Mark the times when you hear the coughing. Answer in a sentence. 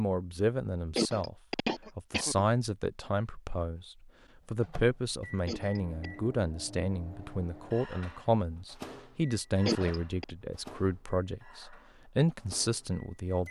You can hear the coughing from 0.9 to 2.5 s, from 5.5 to 6.1 s and from 9.7 to 10.3 s.